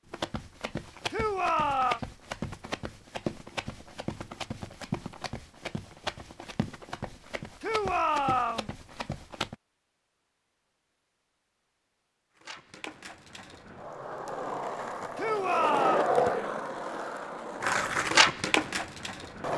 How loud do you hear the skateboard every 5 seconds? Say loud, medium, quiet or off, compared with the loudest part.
off, off, medium, loud.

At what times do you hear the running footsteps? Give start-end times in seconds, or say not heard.
0.1-9.6.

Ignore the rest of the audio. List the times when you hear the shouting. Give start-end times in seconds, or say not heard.
1.1-2.0, 7.6-8.7, 15.2-16.1.